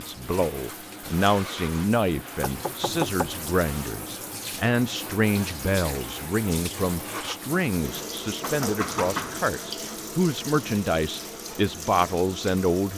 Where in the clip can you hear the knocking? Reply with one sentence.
The knocking can be heard from 2.2 to 3.4 s and from 8.4 to 9.6 s.